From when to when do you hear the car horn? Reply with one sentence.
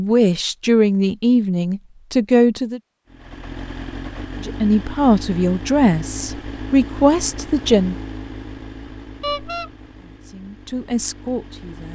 The car horn can be heard from 9.2 to 9.7 s.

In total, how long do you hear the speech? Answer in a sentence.
You can hear the speech for 8 seconds altogether.